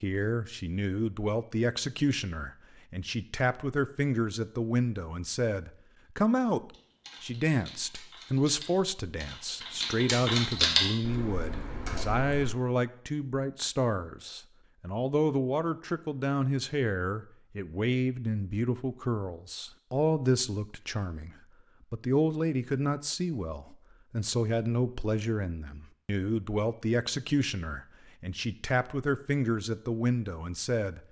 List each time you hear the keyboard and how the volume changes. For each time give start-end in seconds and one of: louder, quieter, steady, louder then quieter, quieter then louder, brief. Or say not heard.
6.7-12.4 louder then quieter.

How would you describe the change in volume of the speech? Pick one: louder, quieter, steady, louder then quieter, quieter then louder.
steady.